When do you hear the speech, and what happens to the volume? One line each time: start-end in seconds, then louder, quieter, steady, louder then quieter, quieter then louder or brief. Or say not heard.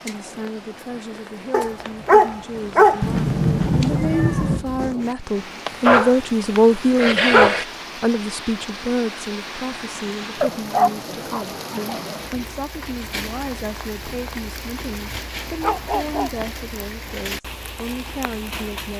0.0-18.9 louder then quieter.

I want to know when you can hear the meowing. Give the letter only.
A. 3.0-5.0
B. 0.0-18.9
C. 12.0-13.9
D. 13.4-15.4
A.